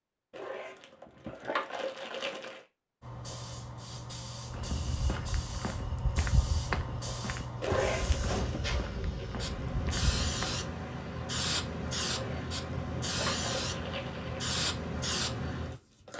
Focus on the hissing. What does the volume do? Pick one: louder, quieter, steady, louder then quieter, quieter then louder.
louder.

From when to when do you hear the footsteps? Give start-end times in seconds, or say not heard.
4.5-10.6.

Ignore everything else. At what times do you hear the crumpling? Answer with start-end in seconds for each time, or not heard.
0.3-2.6, 7.6-8.6, 12.1-14.5.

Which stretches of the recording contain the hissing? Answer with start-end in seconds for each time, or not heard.
3.0-16.1.